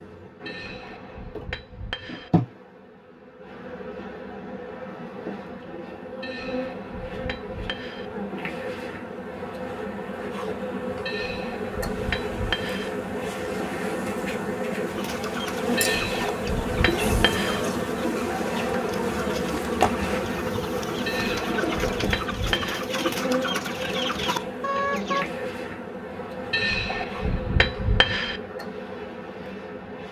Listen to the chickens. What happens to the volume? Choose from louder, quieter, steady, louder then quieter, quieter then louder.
louder.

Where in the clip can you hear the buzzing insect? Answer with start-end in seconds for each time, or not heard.
0.0-30.0.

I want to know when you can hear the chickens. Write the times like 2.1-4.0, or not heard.
14.9-25.3.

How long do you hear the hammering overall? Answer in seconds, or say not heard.
11 s.